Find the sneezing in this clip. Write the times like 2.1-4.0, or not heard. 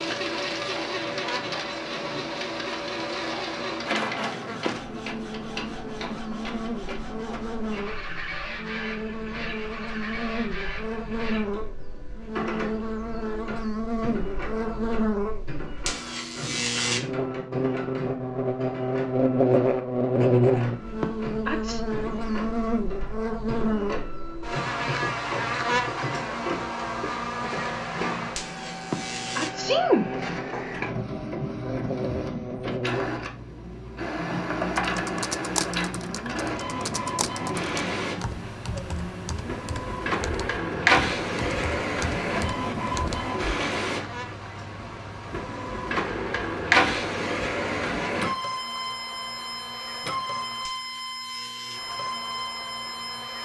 21.0-21.8, 28.9-30.1.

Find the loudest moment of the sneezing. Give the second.
30 s.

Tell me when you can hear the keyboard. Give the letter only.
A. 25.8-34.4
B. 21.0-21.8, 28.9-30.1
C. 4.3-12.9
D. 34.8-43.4
D.